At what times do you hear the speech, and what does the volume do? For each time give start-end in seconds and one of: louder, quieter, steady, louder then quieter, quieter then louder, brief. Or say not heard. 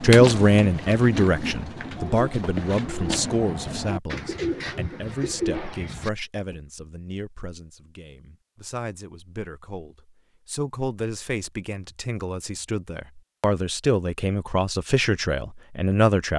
0.0-16.3 quieter then louder.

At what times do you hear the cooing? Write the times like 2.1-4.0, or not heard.
0.0-6.5.